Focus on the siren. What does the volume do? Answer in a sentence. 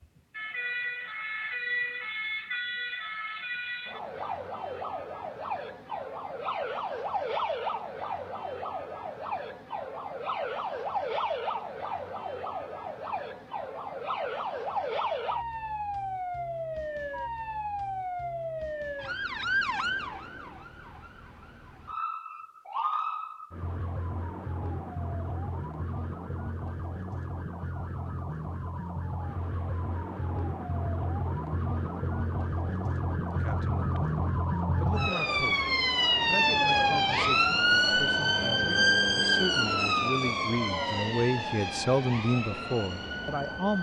The volume of the siren goes up.